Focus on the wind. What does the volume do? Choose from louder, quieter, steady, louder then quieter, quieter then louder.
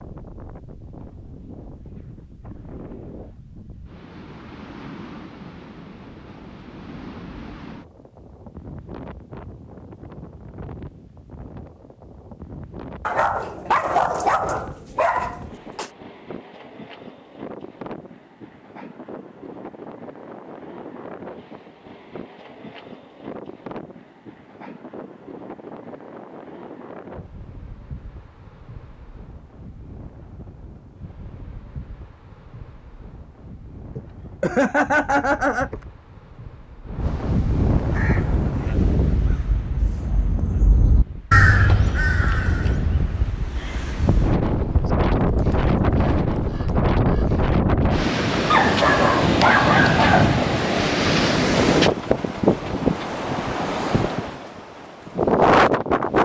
louder.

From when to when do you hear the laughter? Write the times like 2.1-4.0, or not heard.
34.0-35.8.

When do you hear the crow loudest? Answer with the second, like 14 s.
41 s.